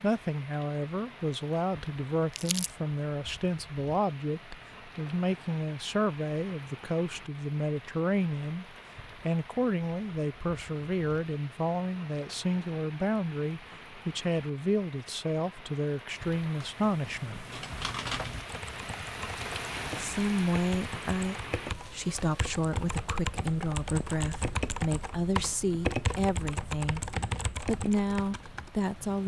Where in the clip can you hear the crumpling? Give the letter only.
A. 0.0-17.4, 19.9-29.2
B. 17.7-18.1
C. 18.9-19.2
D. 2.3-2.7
D.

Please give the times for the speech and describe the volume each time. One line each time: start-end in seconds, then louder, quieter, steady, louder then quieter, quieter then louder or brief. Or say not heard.
0.0-17.4 steady
19.9-29.2 steady.